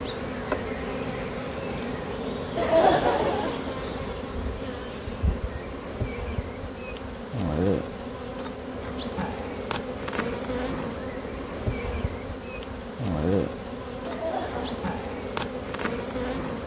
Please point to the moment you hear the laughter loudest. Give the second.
3 s.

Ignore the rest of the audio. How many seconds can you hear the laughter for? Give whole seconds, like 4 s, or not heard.
2 s.